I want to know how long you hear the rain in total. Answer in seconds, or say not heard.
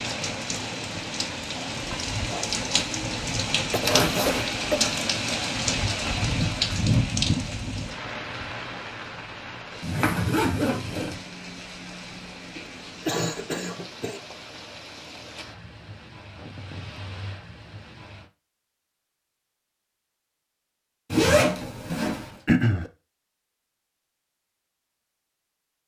18 s.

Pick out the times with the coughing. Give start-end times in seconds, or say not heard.
3.7-5.0, 12.6-14.2, 22.4-22.9.